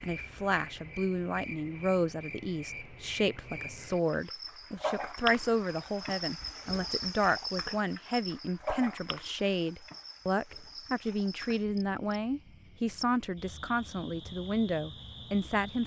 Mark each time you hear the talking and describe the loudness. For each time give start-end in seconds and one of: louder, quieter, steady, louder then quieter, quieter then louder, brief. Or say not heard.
0.0-15.8 steady.